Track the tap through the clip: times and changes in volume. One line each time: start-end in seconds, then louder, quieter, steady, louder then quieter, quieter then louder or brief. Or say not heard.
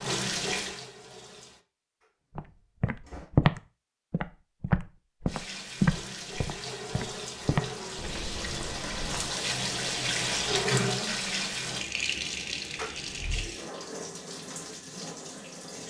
0.0-1.6 brief
5.2-15.8 louder then quieter.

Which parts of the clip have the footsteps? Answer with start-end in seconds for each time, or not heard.
2.4-9.3.